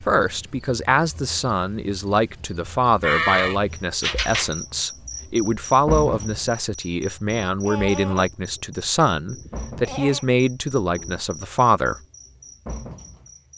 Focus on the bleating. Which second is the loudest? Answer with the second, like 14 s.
3 s.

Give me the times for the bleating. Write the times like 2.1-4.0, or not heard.
3.0-4.5, 7.6-10.2.